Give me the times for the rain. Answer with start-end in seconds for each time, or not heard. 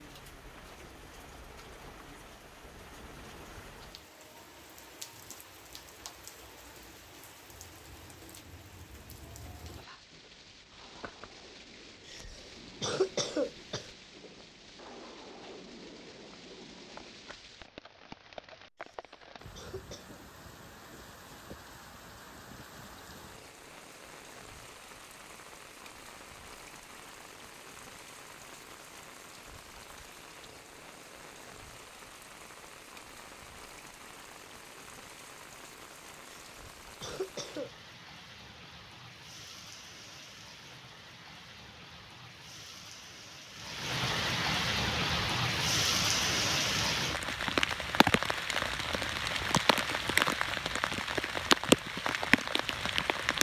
0.0-53.3.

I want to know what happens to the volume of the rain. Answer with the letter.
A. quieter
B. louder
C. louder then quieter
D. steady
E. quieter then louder
B.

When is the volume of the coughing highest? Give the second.
13 s.